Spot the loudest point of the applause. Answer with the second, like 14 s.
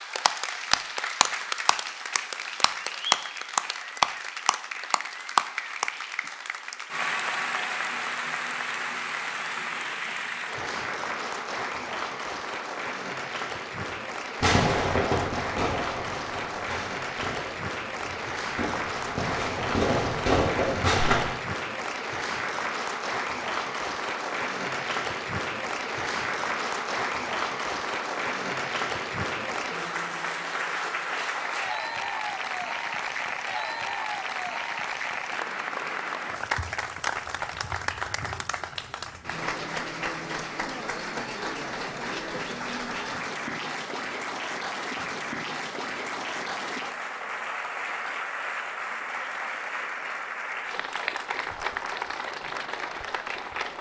4 s.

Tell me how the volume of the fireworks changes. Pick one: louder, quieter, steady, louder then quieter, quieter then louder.
quieter then louder.